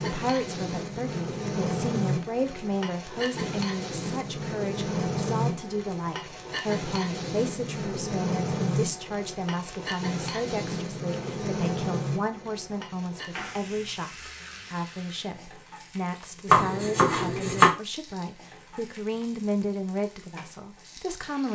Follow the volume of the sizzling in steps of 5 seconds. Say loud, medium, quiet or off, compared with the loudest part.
loud, loud, loud, quiet, quiet.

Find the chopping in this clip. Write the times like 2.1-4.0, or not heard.
16.4-17.7.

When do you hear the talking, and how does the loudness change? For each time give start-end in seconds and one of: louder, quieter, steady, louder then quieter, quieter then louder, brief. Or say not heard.
0.0-21.5 steady.